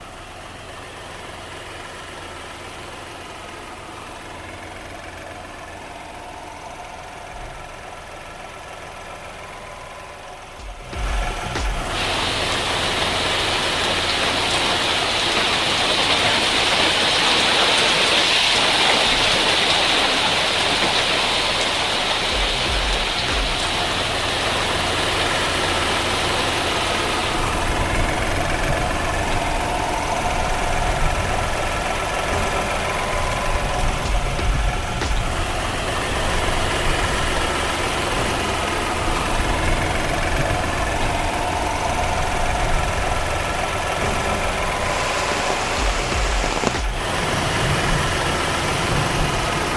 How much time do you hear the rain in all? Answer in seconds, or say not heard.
38 s.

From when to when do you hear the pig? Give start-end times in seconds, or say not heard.
not heard.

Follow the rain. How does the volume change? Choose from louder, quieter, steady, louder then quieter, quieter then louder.
quieter then louder.